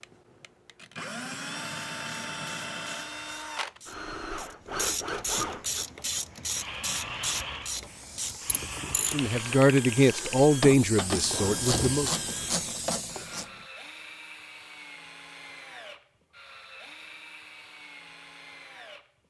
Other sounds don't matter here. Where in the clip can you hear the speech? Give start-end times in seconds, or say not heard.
9.1-12.1.